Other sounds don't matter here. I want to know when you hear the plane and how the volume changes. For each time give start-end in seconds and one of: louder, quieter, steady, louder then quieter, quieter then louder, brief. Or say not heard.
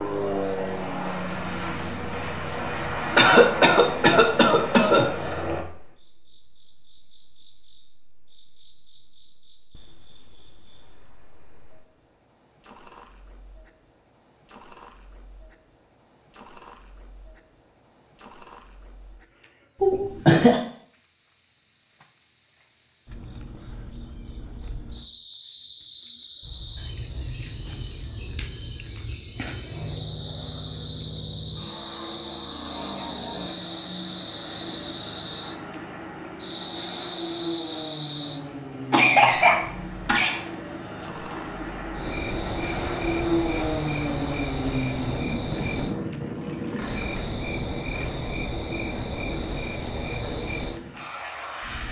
0.0-5.7 steady
26.4-51.8 louder then quieter.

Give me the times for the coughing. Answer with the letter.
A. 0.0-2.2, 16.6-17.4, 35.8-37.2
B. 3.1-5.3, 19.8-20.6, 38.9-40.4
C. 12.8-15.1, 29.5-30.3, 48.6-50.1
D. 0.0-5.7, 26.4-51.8
B.